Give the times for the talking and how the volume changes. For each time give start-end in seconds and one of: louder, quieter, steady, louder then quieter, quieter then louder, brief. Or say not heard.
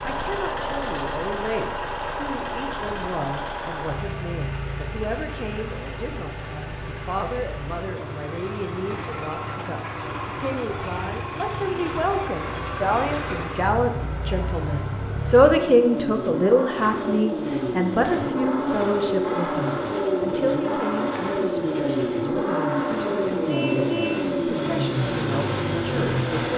0.0-26.5 louder then quieter.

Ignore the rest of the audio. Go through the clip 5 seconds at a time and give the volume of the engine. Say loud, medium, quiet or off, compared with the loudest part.
medium, medium, medium, loud, loud, loud.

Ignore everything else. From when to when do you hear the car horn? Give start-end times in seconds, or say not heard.
23.4-24.3.